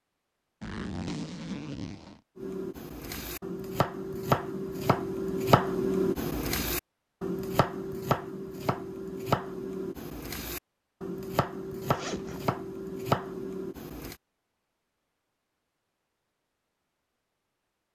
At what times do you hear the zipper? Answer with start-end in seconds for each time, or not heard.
0.6-2.2, 11.8-12.5.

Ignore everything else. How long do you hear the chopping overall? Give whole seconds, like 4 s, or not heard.
12 s.